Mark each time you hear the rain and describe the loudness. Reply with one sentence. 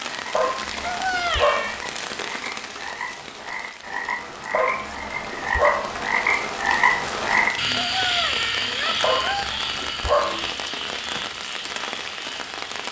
The rain can be heard from 0.0 to 12.8 s, getting quieter then louder.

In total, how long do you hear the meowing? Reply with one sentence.
The meowing can be heard for 3 seconds in total.